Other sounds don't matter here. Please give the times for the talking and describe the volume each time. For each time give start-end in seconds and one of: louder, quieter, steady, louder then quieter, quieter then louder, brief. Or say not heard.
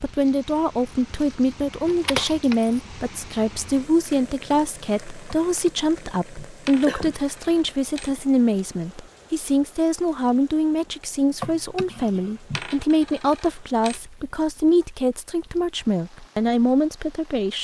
0.0-17.5 steady.